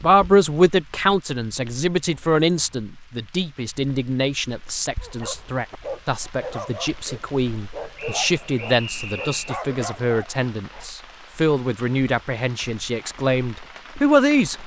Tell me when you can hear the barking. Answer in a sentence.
You can hear the barking from 5.0 to 10.8 s.